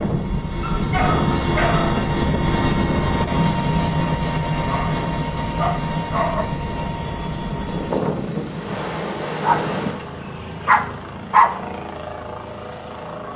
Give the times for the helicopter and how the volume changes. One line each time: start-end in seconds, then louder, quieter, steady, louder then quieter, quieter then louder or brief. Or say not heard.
0.0-13.3 quieter.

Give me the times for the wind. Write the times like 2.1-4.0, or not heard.
0.0-10.1.